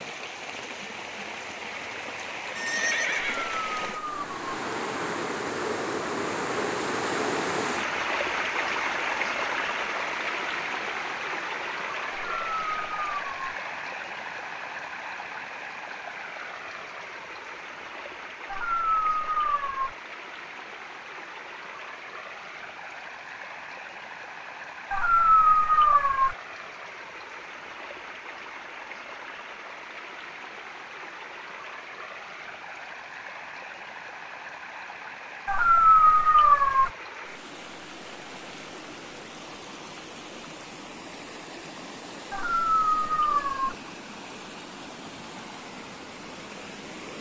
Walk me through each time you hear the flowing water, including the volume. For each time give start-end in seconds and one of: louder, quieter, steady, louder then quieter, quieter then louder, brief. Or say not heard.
0.0-47.1 quieter.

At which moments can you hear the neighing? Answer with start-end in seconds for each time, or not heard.
2.5-3.5.